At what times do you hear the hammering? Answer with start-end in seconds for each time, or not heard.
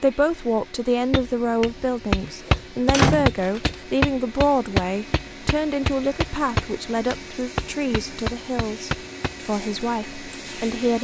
1.1-9.4.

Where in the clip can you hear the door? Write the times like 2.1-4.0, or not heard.
2.2-3.8.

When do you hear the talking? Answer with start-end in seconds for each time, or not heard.
0.0-10.9.